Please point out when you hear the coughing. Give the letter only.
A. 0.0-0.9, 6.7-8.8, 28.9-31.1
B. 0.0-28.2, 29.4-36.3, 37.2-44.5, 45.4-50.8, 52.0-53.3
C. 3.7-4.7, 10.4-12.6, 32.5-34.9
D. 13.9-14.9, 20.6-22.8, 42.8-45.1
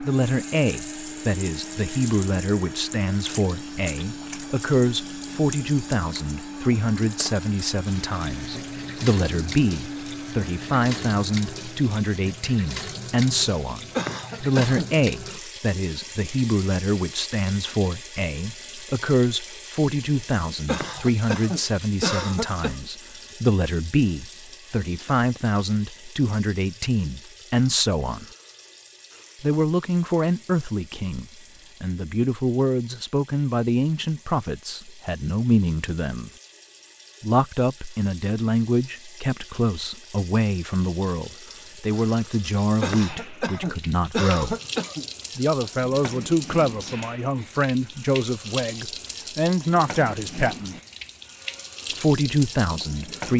D.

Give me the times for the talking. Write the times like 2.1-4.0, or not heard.
0.0-28.2, 29.4-36.3, 37.2-44.5, 45.4-50.8, 52.0-53.3.